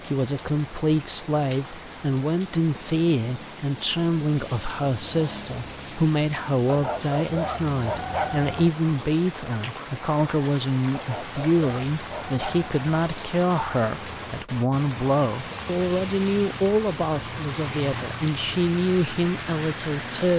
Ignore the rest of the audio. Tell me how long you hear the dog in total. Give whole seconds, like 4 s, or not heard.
4 s.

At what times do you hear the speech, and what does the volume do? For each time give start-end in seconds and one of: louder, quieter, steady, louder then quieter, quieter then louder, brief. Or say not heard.
0.1-20.3 steady.